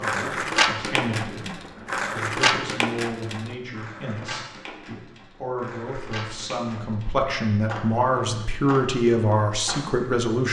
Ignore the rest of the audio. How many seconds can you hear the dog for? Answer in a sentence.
The dog can't be heard in this clip.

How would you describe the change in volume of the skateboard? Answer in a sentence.
The volume of the skateboard goes down.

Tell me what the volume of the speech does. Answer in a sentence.
The volume of the speech goes up.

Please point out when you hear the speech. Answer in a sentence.
The speech can be heard from 0.0 to 10.4 s.